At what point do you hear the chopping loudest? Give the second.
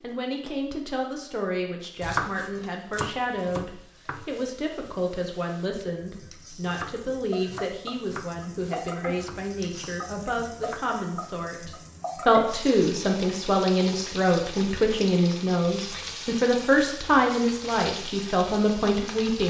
2 s.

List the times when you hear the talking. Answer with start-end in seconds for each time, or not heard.
0.0-19.4.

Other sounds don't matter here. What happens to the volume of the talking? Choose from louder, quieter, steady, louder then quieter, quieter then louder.
louder.